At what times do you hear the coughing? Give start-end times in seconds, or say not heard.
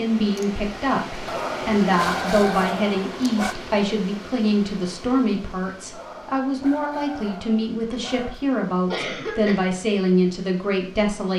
8.9-9.7.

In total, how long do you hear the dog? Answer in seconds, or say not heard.
5 s.